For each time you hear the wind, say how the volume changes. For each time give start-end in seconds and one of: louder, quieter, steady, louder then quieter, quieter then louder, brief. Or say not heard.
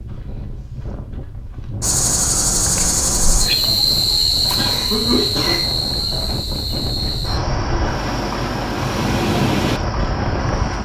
0.0-10.7 louder.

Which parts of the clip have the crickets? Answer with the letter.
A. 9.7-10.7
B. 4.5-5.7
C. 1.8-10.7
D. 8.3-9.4
C.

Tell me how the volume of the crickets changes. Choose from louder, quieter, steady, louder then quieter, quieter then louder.
quieter.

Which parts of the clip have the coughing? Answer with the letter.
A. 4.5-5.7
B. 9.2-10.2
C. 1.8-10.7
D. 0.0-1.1
A.